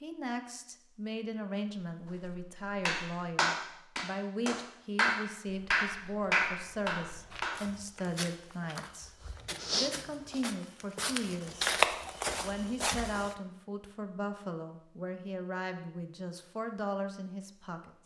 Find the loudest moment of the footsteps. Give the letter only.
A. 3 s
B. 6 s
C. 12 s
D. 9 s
C.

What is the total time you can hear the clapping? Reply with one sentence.
You can hear the clapping for 5 seconds altogether.